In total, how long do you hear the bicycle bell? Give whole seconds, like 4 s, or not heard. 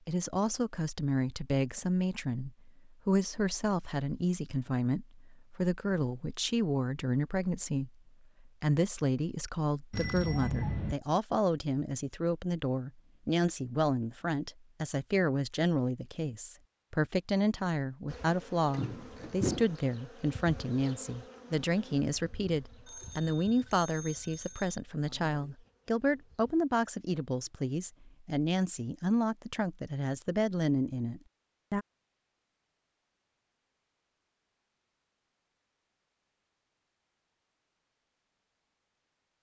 3 s.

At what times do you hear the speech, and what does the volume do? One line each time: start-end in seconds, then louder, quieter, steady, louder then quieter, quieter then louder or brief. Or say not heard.
0.1-31.9 steady.